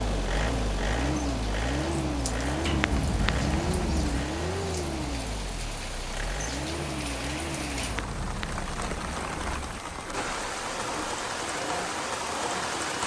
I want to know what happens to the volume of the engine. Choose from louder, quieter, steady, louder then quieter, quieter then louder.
quieter.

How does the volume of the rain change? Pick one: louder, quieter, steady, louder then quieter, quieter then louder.
louder.